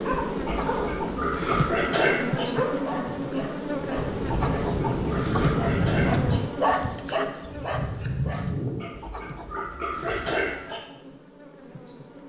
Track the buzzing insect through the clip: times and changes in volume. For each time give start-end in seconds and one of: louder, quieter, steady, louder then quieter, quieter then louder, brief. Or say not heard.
0.0-12.2 quieter.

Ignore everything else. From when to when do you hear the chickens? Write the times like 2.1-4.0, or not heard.
0.3-1.9, 4.2-6.2, 8.9-10.8.